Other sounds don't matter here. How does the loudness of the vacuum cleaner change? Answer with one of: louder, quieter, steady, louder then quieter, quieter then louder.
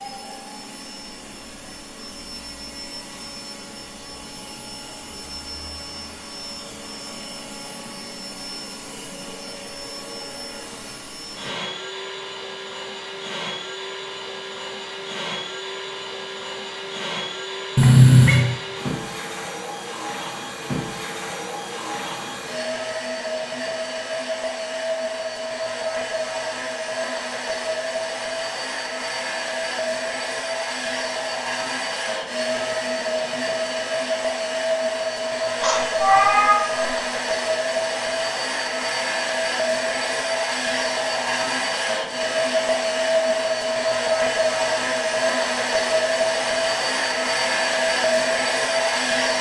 louder.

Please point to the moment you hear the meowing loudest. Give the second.
18 s.